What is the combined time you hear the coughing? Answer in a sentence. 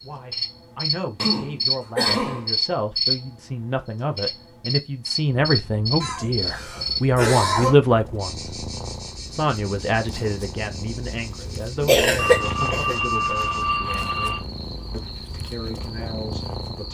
You can hear the coughing for 4 seconds altogether.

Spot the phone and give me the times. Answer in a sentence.
You can hear the phone from 12.2 to 14.4 s.